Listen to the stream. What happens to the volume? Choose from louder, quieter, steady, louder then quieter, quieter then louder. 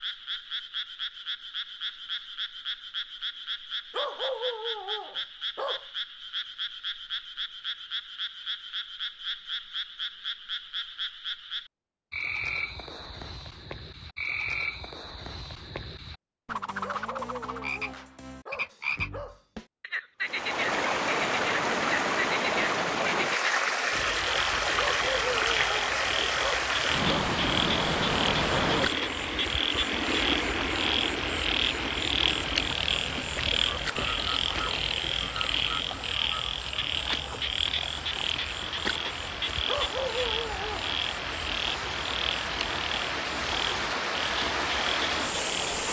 quieter then louder.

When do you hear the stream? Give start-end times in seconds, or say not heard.
20.2-45.8.